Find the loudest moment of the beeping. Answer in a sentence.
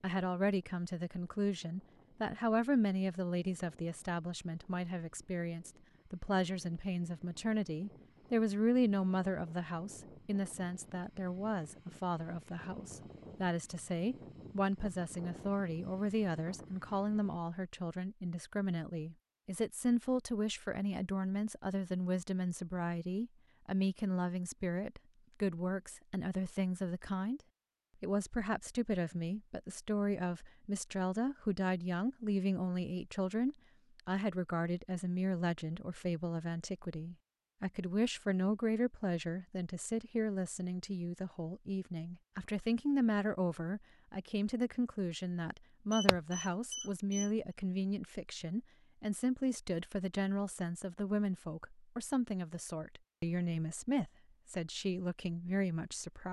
The volume of the beeping peaks at 46 seconds.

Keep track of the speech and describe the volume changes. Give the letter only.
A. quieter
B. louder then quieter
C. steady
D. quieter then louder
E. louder
C.